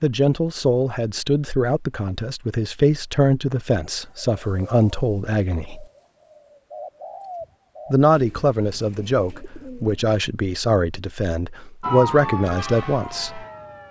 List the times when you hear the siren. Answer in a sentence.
The siren can be heard from 11.8 to 13.8 s.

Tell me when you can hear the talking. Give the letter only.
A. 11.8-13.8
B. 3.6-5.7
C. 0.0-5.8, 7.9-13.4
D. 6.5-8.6
C.